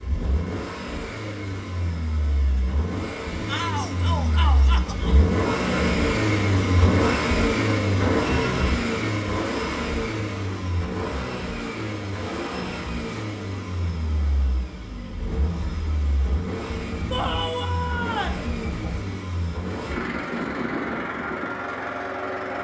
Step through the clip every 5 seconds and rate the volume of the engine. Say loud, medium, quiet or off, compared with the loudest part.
medium, loud, medium, medium, medium.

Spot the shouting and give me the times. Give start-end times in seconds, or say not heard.
3.5-5.2, 17.1-18.4.